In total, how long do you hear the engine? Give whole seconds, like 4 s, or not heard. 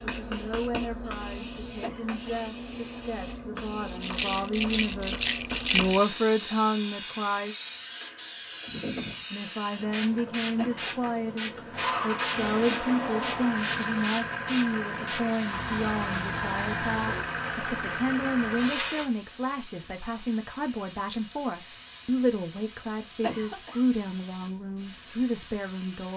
7 s.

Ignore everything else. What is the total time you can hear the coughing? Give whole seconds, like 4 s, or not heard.
2 s.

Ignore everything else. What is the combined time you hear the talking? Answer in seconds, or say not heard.
24 s.